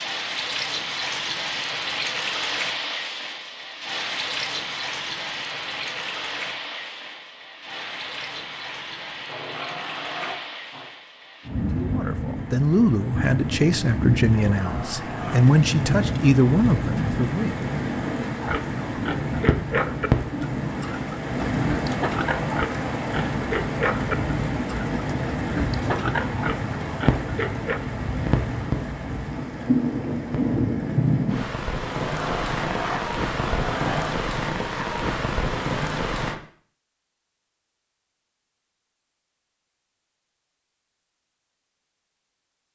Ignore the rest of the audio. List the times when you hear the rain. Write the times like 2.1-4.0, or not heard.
0.0-36.4.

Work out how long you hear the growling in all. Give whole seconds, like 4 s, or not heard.
5 s.